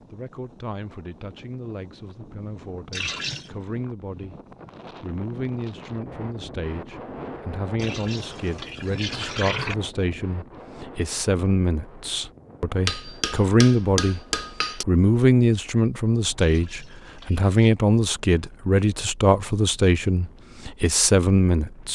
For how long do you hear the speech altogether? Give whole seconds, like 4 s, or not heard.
21 s.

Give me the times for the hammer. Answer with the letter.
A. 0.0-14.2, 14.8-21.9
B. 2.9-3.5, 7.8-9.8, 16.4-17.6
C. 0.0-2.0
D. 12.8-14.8
D.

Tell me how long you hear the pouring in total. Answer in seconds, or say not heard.
4 s.